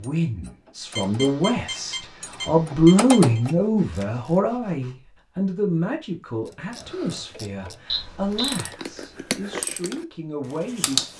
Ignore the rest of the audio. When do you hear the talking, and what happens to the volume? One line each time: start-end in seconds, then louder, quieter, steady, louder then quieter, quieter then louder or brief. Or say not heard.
0.0-11.1 louder then quieter.